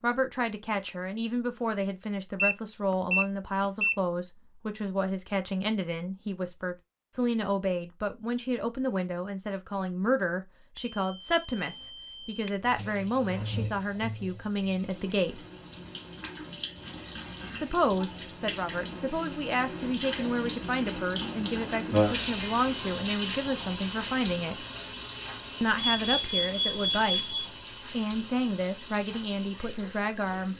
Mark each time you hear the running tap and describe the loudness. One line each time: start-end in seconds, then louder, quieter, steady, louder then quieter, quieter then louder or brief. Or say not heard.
11.5-30.5 louder then quieter.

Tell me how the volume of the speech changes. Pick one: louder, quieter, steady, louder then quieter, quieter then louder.
steady.